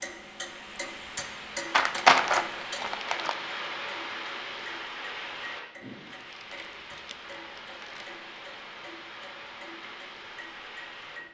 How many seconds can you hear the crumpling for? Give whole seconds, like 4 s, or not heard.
4 s.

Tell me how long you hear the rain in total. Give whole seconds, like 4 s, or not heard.
11 s.